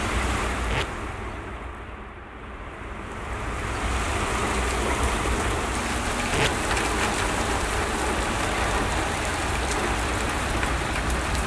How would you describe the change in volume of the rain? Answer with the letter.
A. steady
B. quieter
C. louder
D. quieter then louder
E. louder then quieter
C.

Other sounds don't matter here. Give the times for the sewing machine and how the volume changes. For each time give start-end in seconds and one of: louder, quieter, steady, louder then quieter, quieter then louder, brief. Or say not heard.
not heard.